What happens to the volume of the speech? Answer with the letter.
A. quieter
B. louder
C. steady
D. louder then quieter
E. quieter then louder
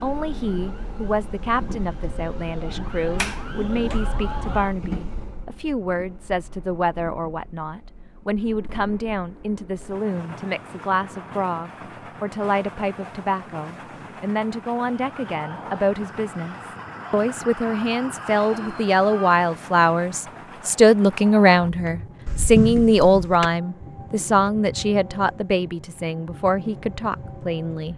B.